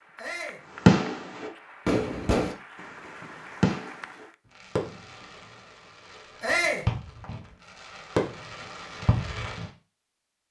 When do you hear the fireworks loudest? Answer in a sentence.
The volume of the fireworks peaks at 1 second.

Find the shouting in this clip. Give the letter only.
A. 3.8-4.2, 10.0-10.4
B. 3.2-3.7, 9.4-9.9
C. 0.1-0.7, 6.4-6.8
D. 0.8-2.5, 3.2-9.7
C.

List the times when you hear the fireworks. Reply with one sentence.
The fireworks can be heard from 0.8 to 2.5 s and from 3.2 to 9.7 s.